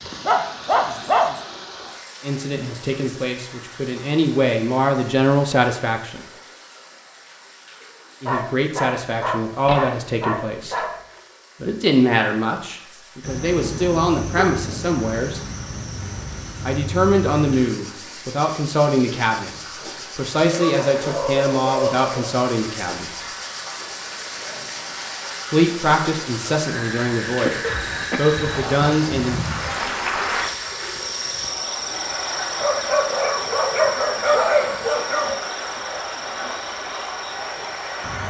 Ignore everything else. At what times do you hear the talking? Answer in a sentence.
The talking can be heard from 2.2 to 6.2 s, from 8.2 to 10.8 s, from 11.6 to 15.4 s, from 16.6 to 19.5 s, from 20.1 to 23.2 s and from 25.5 to 29.4 s.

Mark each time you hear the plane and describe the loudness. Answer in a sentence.
The plane can't be heard in this clip.